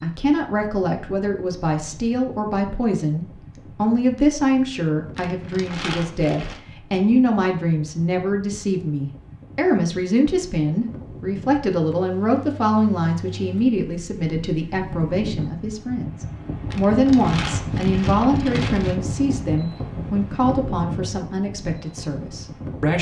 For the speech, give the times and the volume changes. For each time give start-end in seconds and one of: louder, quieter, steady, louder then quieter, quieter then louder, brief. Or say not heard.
0.0-22.9 steady.